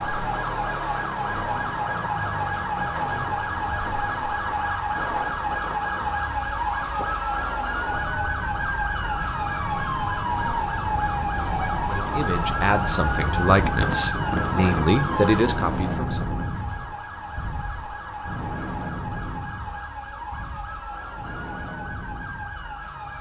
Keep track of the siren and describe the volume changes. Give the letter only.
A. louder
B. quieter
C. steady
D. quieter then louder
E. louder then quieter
B.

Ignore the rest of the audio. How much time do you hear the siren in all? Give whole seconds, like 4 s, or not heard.
23 s.